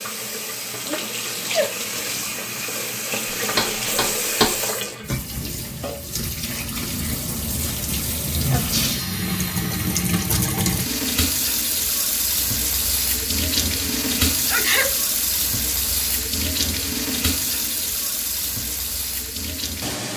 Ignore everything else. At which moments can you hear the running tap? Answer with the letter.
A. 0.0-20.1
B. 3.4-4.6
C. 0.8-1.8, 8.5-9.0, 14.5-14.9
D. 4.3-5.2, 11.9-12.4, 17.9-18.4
A.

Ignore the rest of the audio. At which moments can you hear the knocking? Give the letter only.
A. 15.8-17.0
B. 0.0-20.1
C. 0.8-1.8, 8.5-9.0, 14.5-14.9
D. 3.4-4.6
D.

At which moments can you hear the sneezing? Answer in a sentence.
You can hear the sneezing from 0.8 to 1.8 s, from 8.5 to 9.0 s and from 14.5 to 14.9 s.